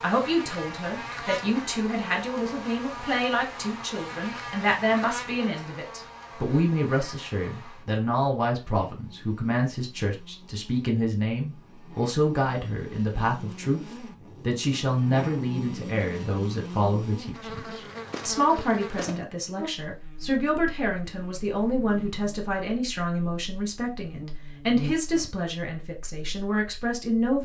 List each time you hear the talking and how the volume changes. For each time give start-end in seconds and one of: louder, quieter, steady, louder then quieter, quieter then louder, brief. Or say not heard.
0.0-27.3 steady.